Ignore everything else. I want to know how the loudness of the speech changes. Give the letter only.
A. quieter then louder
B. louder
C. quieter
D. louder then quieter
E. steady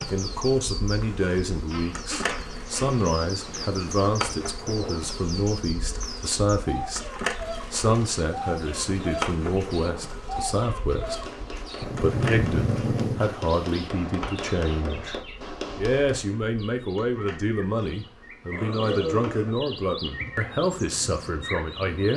E.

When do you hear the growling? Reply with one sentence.
You can hear the growling from 1.7 to 3.7 s, from 11.8 to 13.2 s and from 18.5 to 19.6 s.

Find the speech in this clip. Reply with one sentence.
You can hear the speech from 0.1 to 22.1 s.